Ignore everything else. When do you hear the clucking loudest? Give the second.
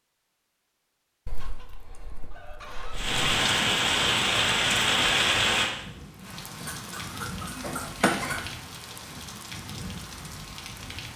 8 s.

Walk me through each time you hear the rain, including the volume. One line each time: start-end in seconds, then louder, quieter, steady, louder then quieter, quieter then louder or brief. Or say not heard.
2.9-11.1 quieter.